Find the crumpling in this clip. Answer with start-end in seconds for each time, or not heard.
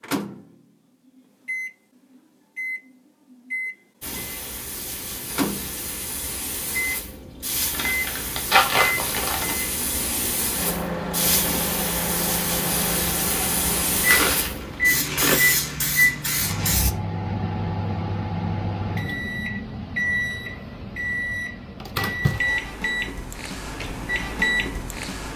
7.7-9.6, 14.1-15.6.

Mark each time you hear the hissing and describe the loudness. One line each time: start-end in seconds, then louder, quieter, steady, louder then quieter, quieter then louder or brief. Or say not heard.
4.0-16.9 louder.